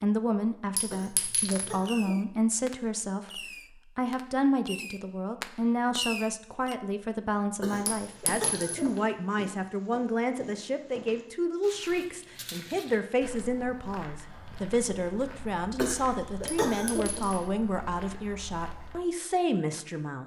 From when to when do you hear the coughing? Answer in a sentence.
The coughing can be heard from 0.9 to 2.1 s, from 7.6 to 9.1 s and from 15.8 to 17.3 s.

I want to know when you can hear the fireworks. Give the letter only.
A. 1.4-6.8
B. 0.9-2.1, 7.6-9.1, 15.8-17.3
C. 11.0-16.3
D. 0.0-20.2
A.